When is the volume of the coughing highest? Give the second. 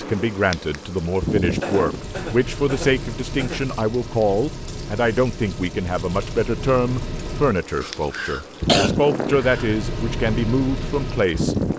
9 s.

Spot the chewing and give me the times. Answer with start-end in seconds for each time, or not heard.
not heard.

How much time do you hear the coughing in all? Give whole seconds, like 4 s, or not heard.
4 s.